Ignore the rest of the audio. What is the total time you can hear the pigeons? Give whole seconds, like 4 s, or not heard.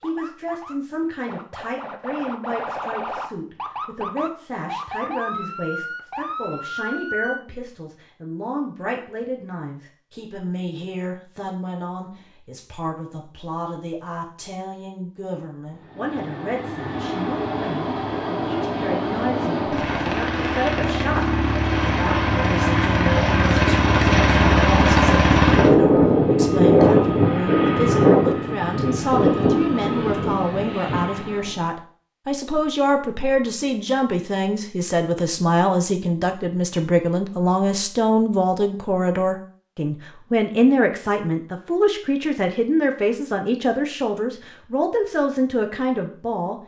not heard.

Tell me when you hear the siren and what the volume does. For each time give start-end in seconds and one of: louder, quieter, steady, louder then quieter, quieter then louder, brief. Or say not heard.
0.0-7.4 louder.